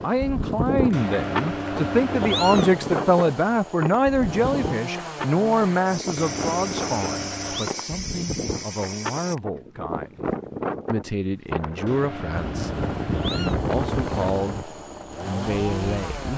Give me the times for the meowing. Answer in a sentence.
You can hear the meowing from 0.9 to 2.8 s, from 6.2 to 7.7 s and from 11.8 to 13.6 s.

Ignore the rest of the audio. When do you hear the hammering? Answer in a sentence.
The hammering can't be heard in this clip.